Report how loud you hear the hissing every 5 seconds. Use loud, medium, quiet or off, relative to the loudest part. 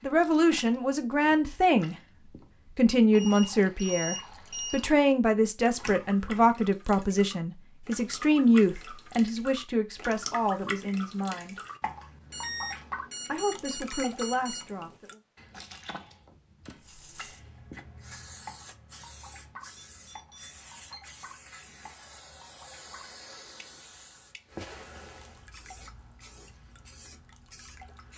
off, off, off, loud, loud, medium.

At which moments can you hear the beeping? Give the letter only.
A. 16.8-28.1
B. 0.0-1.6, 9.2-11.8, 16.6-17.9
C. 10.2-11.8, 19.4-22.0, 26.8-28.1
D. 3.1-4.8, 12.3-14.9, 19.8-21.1
D.